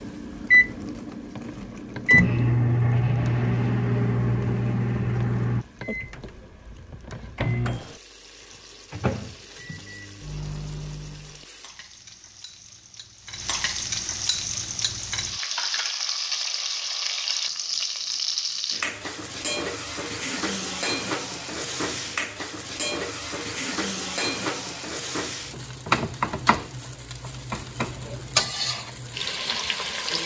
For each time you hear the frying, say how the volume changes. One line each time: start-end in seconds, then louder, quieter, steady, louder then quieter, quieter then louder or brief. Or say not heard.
0.0-30.2 louder.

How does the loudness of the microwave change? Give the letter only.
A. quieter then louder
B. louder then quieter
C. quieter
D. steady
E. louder
C.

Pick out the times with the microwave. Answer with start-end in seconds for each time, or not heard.
0.0-11.4.